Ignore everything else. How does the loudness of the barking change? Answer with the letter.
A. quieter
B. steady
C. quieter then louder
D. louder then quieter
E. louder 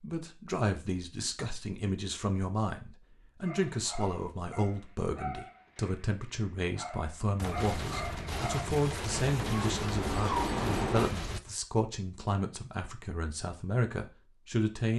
E.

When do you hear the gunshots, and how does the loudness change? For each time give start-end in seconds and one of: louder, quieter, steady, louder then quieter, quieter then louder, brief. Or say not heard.
7.3-11.4 steady.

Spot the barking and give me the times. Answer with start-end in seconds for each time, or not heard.
3.4-11.5.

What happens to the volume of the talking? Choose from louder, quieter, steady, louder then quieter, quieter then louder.
steady.